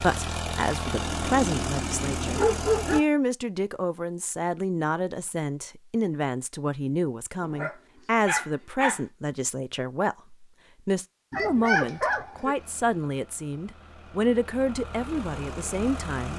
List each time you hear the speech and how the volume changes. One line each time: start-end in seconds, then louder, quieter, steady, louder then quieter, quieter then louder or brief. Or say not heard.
0.0-16.3 steady.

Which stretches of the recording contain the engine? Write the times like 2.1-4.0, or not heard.
0.0-3.0, 12.6-16.3.